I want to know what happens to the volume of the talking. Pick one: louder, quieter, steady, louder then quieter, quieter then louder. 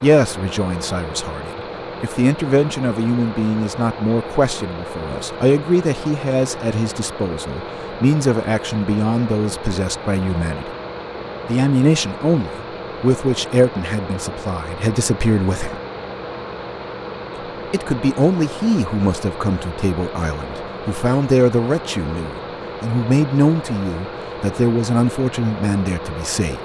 steady.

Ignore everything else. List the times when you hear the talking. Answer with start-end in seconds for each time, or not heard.
0.0-10.7, 11.4-15.8, 17.7-26.5.